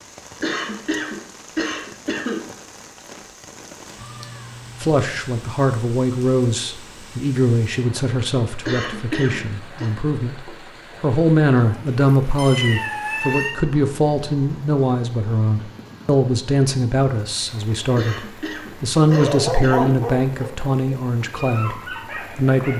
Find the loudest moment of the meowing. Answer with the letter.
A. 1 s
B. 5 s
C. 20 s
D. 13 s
D.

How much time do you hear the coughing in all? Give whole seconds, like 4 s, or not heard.
5 s.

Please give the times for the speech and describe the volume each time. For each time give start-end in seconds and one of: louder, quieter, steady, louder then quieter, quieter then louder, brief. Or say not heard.
4.8-22.7 steady.